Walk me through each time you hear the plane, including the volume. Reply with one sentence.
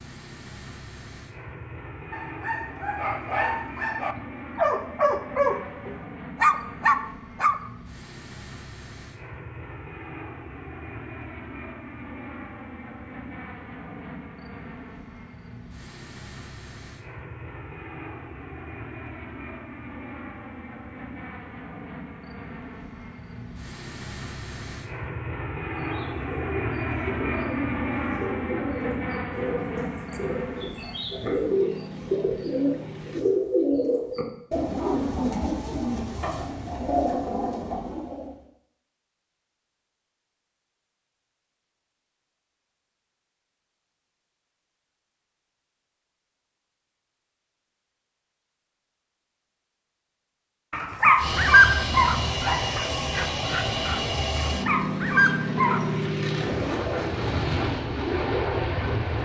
You can hear the plane from 0.0 to 33.2 s, getting louder; and from 51.1 to 59.1 s, at a steady volume.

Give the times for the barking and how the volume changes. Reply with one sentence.
You can hear the barking from 2.1 to 7.5 s, getting louder; and from 50.7 to 55.9 s, getting quieter then louder.